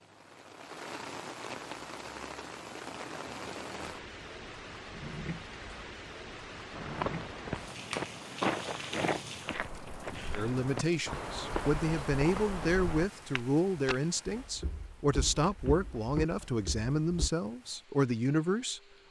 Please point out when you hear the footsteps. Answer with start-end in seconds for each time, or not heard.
6.7-17.3.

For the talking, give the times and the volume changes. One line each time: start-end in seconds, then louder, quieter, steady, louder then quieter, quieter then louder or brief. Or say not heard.
10.3-18.8 steady.